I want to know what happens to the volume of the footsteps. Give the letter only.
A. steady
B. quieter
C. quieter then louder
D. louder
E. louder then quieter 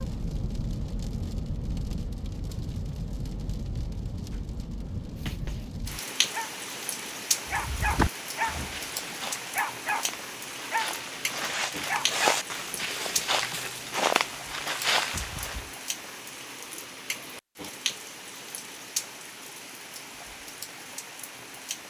C.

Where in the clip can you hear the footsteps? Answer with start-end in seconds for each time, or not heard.
7.5-15.6.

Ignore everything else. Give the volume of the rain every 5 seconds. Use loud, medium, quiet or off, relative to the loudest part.
loud, loud, loud, loud, medium.